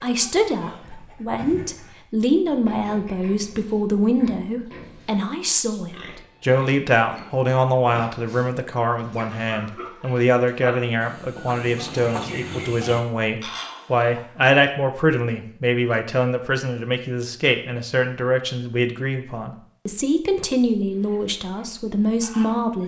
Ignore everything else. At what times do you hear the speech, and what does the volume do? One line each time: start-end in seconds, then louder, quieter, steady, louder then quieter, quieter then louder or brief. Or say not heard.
0.0-22.8 steady.